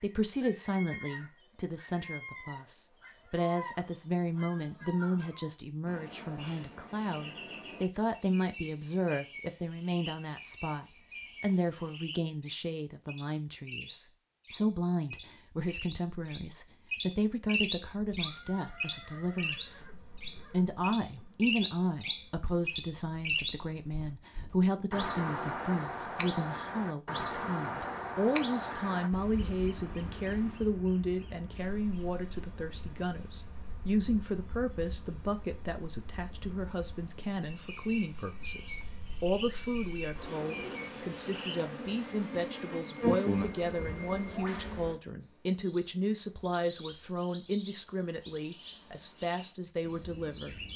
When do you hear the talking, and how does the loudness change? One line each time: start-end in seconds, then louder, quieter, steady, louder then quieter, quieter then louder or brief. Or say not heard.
0.0-50.7 steady.